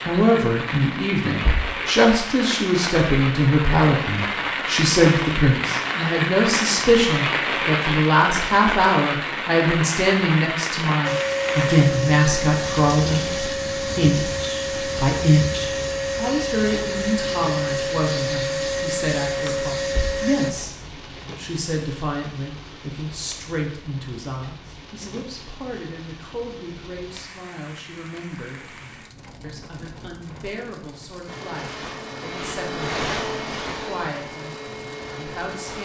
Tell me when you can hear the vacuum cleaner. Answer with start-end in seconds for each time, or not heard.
11.1-20.5, 31.2-35.8.